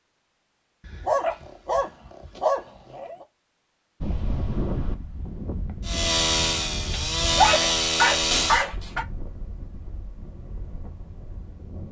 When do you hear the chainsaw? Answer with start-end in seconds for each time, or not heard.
5.8-8.7.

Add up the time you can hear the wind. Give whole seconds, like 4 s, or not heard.
8 s.